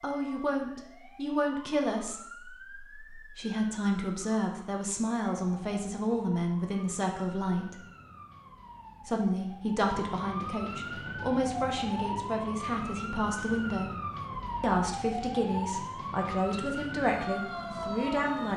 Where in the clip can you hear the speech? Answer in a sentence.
You can hear the speech from 0.0 to 7.8 s, from 9.1 to 13.9 s and from 14.6 to 18.5 s.